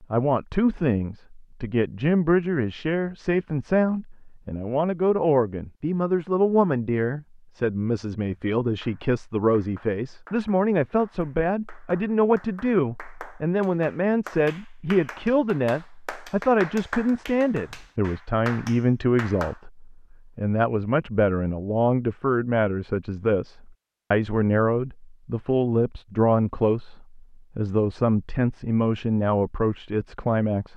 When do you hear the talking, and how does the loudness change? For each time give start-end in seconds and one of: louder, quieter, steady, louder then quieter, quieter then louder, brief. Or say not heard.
0.0-30.7 steady.